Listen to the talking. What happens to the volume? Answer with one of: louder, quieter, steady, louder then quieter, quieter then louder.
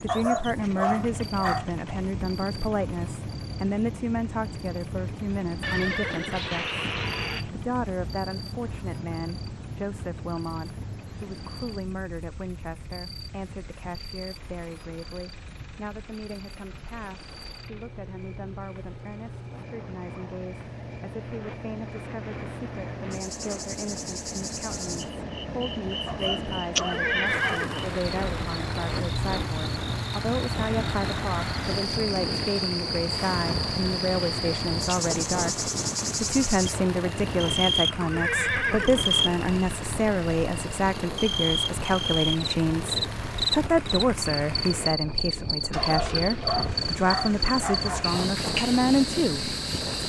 quieter then louder.